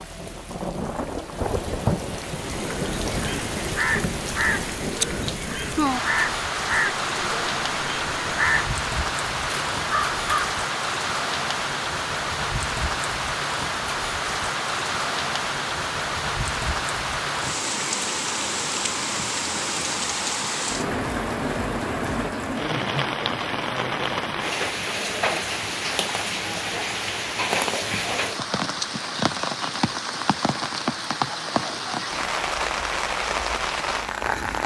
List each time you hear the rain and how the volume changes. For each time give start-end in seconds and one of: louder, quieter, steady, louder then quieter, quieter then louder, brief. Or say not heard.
0.0-34.6 steady.